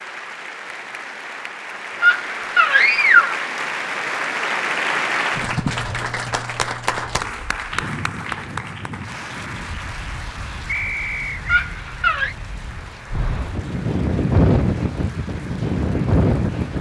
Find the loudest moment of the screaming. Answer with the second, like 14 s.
3 s.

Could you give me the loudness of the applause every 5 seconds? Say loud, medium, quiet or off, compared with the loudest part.
loud, loud, quiet, quiet.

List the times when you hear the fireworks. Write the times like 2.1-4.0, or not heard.
not heard.